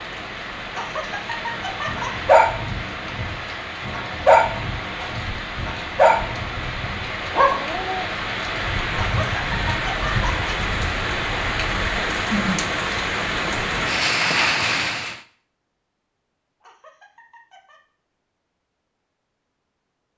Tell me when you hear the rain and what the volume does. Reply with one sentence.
The rain can be heard from 0.0 to 15.2 s, getting louder.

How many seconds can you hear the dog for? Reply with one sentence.
The dog can be heard for 6 seconds in total.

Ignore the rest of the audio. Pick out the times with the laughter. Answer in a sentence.
You can hear the laughter from 0.7 to 2.1 s, from 8.9 to 10.5 s and from 16.6 to 17.8 s.